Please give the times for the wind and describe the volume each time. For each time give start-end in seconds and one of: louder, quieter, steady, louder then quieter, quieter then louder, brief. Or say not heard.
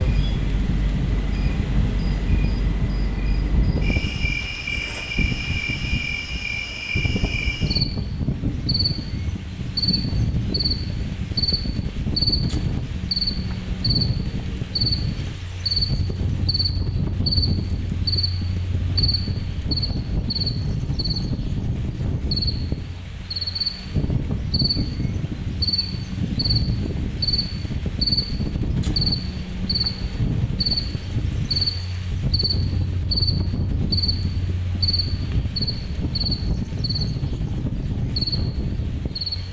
0.0-39.4 steady.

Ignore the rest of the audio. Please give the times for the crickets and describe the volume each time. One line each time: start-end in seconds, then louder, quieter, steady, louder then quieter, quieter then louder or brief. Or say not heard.
0.0-39.4 steady.